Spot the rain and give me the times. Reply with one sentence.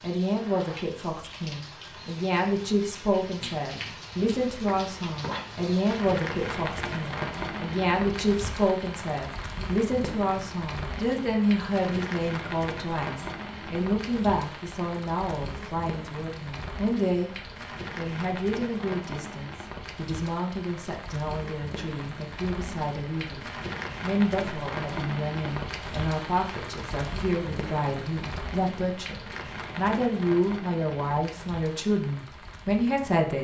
You can hear the rain from 0.0 to 33.3 s.